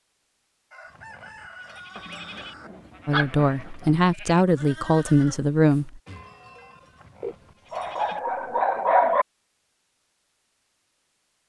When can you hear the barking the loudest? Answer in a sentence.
The loudest moment of the barking is at 9 seconds.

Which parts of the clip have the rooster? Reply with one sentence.
The rooster can be heard from 0.7 to 2.7 s.